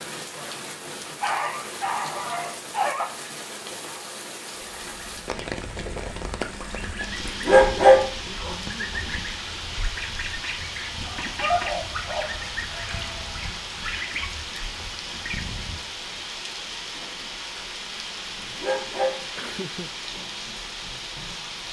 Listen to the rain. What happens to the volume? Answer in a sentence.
The loudness of the rain stays about the same.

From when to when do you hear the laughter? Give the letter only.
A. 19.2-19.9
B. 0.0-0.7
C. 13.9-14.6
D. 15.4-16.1
A.